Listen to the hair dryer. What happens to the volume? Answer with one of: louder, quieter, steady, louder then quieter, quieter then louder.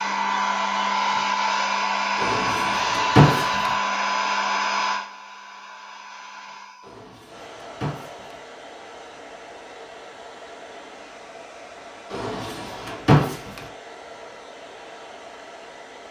quieter.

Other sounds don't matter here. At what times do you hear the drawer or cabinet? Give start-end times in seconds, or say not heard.
2.1-3.7, 6.8-8.3, 12.1-13.6.